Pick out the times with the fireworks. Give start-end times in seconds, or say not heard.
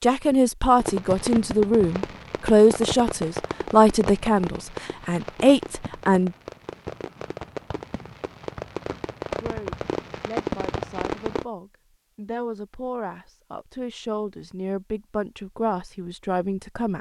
0.8-11.4.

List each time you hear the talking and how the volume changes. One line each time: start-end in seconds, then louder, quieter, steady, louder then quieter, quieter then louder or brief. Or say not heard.
0.0-6.3 steady
9.4-16.9 louder.